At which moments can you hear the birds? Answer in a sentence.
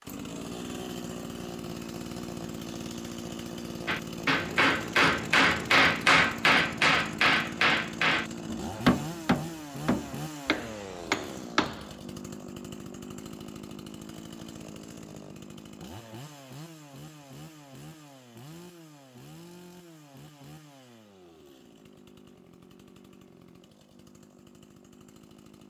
The birds can't be heard in this clip.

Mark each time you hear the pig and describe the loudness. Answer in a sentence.
The pig can't be heard in this clip.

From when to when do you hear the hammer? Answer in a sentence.
The hammer can be heard from 3.9 to 11.9 s.